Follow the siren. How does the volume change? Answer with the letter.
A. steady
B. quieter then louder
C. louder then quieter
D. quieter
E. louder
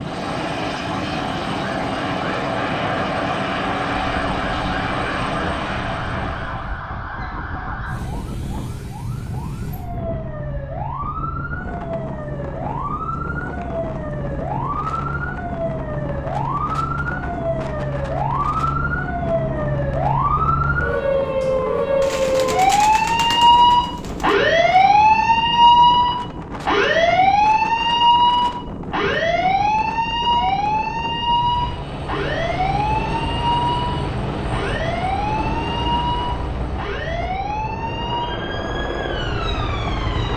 C.